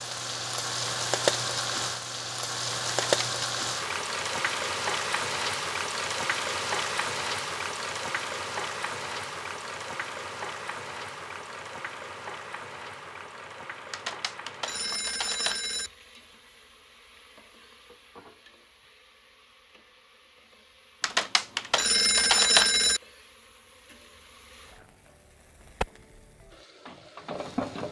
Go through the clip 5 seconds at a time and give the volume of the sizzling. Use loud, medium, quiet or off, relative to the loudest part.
loud, loud, medium, quiet, quiet, medium.